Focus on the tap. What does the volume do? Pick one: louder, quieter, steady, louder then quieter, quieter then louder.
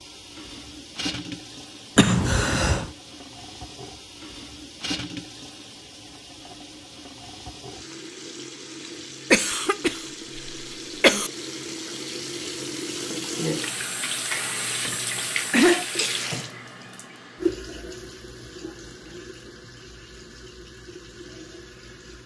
louder then quieter.